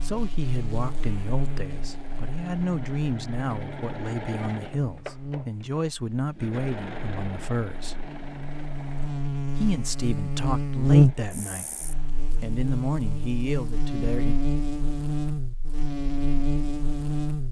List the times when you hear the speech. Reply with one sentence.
The speech can be heard from 0.0 to 8.1 s and from 9.6 to 14.3 s.